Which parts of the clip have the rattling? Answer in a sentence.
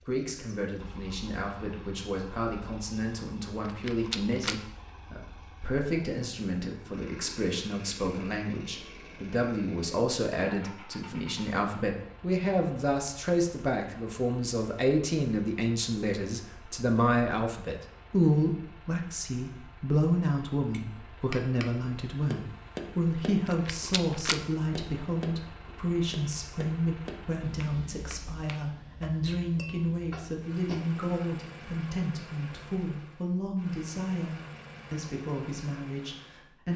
You can hear the rattling from 3.6 to 4.6 s and from 23.4 to 24.4 s.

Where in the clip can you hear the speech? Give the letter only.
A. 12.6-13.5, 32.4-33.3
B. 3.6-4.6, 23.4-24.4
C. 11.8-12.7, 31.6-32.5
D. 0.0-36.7
D.